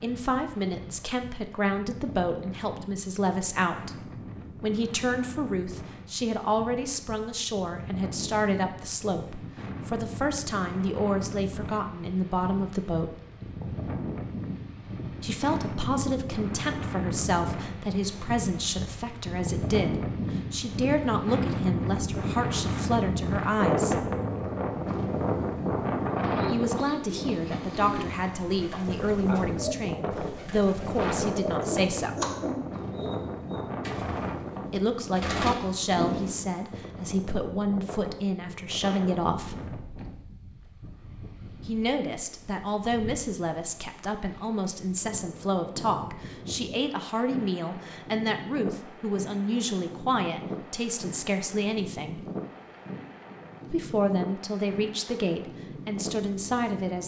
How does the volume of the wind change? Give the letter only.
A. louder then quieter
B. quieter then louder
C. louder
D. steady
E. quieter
A.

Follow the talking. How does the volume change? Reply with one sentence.
The volume of the talking stays about the same.